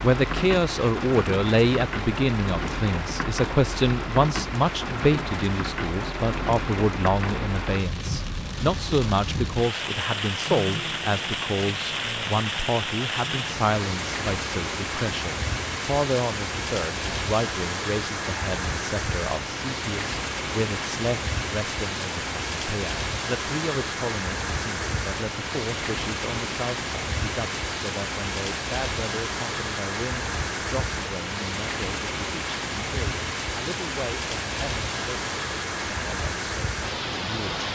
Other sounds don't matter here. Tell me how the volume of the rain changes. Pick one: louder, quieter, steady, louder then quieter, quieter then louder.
steady.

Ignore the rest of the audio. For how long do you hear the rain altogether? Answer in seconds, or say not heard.
38 s.